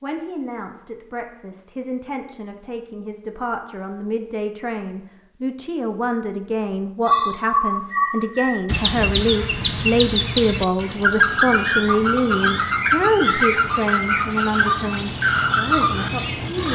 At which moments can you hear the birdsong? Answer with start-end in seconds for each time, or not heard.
7.0-16.7.